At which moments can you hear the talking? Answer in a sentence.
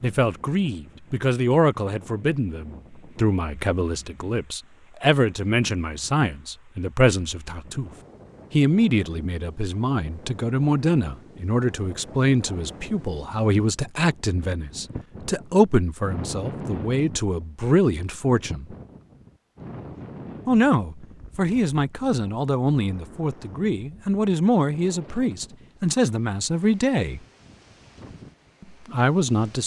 The talking can be heard from 0.0 to 7.9 s, from 8.5 to 18.6 s, from 20.4 to 27.2 s and from 28.9 to 29.6 s.